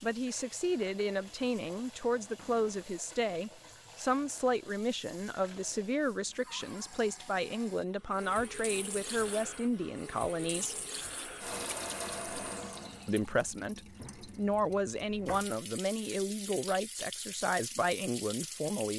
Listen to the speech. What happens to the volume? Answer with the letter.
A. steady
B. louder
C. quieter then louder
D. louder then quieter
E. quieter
A.